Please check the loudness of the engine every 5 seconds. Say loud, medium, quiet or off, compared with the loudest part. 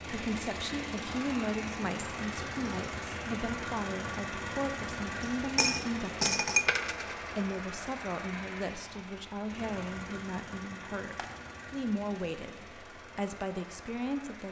loud, loud, medium.